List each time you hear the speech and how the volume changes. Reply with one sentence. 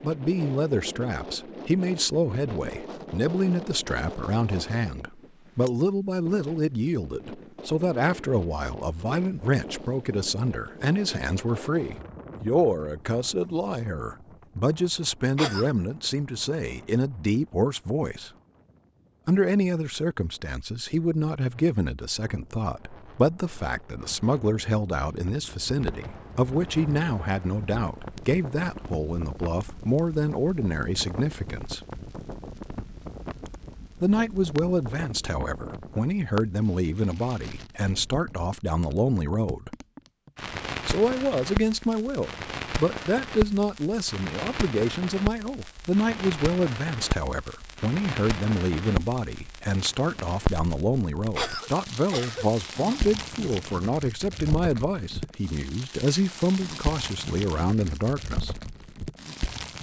The speech can be heard from 0.0 to 18.3 s, at a steady volume; from 19.2 to 31.9 s, at a steady volume; from 34.0 to 39.7 s, at a steady volume; and from 40.9 to 58.5 s, at a steady volume.